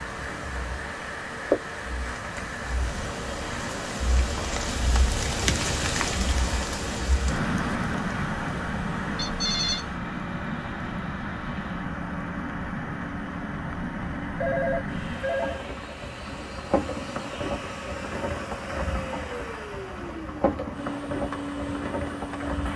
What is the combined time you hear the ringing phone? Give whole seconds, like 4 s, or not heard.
2 s.